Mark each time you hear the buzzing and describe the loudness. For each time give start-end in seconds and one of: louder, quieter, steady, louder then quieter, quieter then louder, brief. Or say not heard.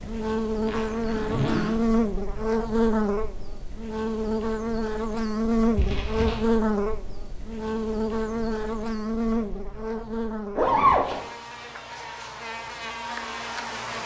0.0-14.0 quieter.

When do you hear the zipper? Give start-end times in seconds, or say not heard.
0.7-1.8, 5.8-6.5, 10.6-11.3.